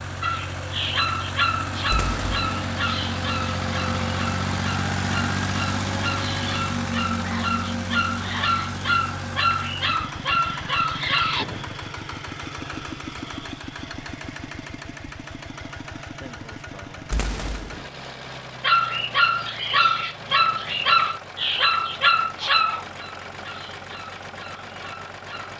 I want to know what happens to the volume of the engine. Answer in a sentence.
The volume of the engine goes down.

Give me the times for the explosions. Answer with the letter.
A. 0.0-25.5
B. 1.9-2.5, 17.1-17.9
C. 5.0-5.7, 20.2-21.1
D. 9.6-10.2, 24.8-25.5
B.